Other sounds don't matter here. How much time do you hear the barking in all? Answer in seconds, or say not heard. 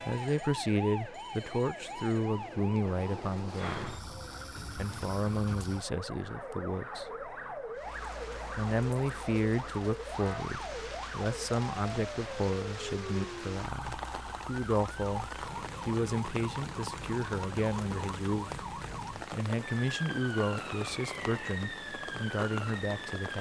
not heard.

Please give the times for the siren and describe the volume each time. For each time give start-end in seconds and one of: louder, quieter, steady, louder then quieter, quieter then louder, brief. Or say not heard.
0.0-23.3 steady.